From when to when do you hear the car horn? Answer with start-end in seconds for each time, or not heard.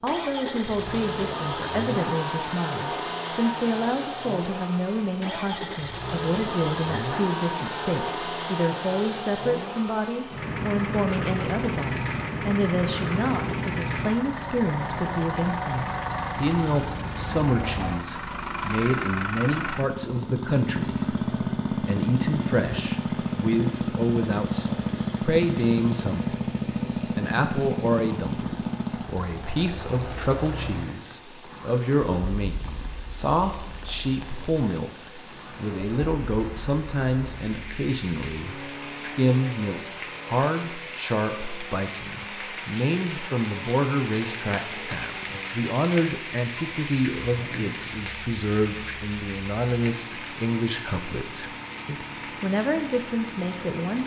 not heard.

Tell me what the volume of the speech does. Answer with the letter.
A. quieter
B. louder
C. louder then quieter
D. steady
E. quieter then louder
D.